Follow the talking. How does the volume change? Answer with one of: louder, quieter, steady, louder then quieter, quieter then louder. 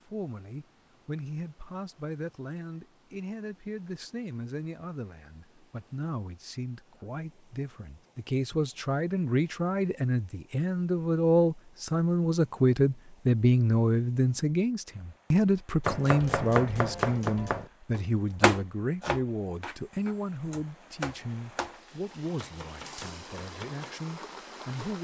louder then quieter.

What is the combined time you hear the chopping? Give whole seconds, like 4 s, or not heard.
8 s.